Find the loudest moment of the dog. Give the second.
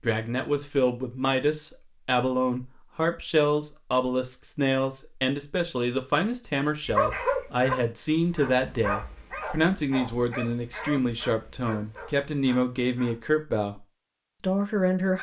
7 s.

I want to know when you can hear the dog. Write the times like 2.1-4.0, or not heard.
6.8-13.2.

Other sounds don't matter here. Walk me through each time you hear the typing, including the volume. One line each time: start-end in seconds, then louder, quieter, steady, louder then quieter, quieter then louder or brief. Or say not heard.
not heard.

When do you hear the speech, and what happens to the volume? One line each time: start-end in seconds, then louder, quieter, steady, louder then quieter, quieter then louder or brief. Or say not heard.
0.0-15.1 steady.